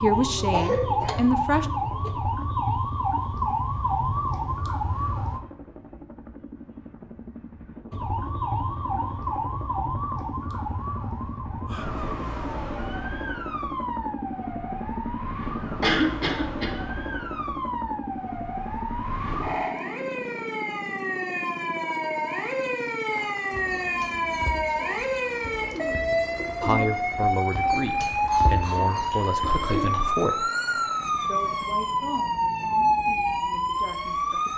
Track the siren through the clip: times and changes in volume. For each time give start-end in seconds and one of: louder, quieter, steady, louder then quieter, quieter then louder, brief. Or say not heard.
0.0-5.4 steady
7.9-34.5 louder.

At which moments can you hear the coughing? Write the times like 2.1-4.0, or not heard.
0.3-1.2, 15.8-16.7, 28.2-30.1.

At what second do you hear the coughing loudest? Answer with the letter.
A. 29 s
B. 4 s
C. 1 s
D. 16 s
D.